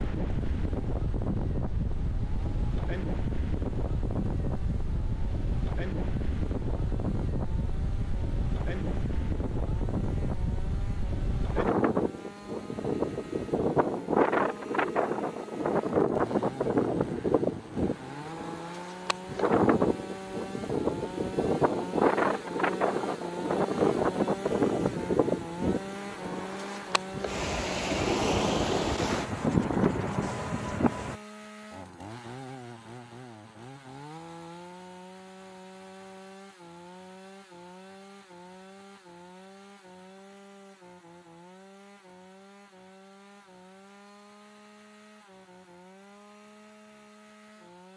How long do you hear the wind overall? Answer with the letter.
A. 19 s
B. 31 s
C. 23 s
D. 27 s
B.